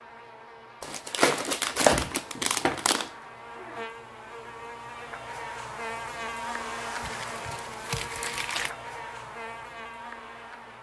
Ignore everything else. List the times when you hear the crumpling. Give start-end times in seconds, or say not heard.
0.8-3.1, 7.0-8.8.